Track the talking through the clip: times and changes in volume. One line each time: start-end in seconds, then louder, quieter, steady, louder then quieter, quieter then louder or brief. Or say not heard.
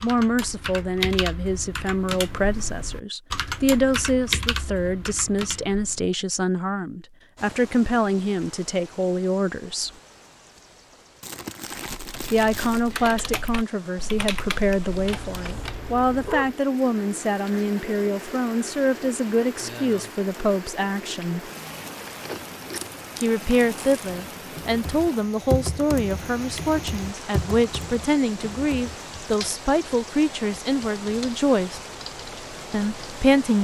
0.0-9.9 steady
12.3-21.5 steady
23.2-31.8 steady
32.7-33.5 brief.